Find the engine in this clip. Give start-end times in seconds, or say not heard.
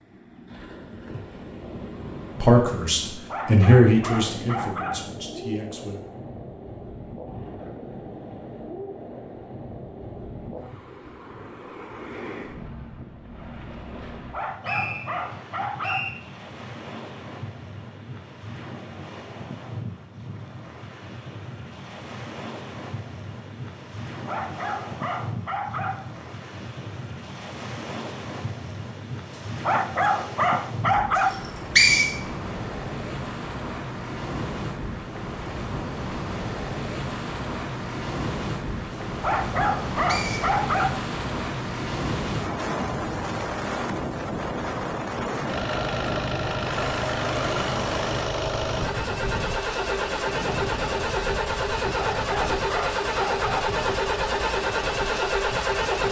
45.5-56.0.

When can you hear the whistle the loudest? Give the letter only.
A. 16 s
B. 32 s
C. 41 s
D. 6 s
B.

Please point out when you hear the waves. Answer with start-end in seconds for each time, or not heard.
0.0-56.0.